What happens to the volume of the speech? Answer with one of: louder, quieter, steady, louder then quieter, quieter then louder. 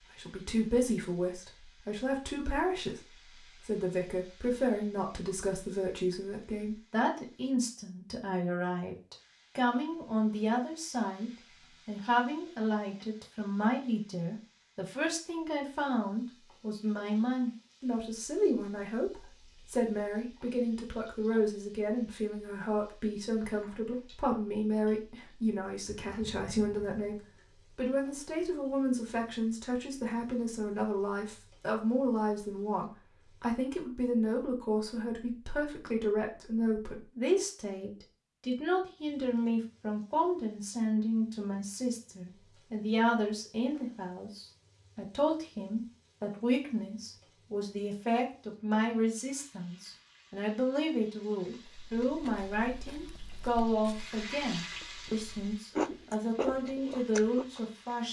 steady.